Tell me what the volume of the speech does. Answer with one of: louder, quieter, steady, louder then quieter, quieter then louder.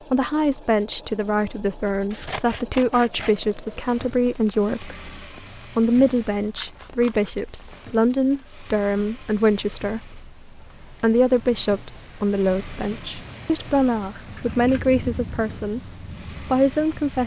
steady.